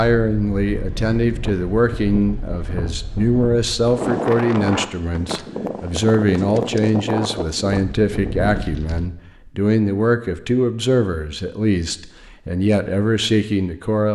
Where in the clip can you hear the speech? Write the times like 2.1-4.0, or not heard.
0.0-14.0.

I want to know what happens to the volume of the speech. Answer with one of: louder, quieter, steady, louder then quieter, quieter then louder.
steady.